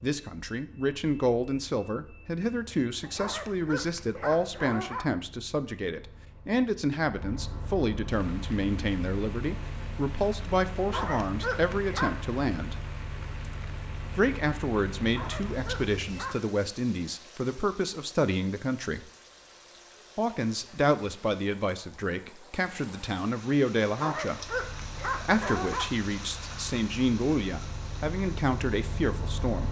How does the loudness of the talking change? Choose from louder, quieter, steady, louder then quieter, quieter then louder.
steady.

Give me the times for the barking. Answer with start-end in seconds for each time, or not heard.
3.0-5.0, 10.8-12.3, 15.0-16.4, 23.9-25.9.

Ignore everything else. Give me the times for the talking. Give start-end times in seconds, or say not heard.
0.0-12.8, 14.2-19.1, 20.1-24.4, 25.1-29.6.